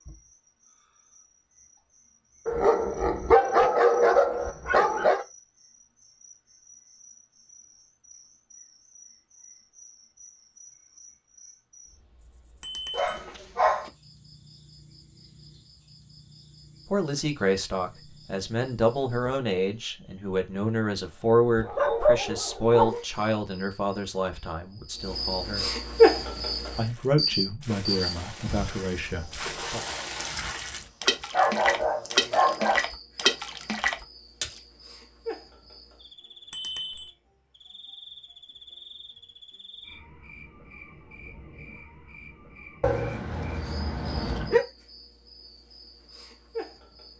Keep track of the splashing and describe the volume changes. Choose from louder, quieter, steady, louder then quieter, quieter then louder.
louder.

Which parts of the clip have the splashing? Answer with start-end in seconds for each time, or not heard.
25.8-34.6.